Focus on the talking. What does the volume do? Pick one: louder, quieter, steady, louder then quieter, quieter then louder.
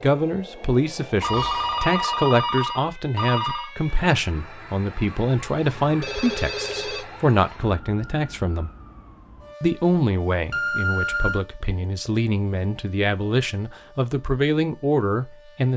steady.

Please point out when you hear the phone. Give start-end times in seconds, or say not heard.
1.2-3.7, 6.0-7.0, 10.5-11.4.